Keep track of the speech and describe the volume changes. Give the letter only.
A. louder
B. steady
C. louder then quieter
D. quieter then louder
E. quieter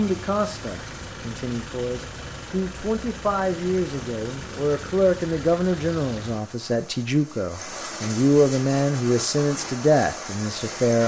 A.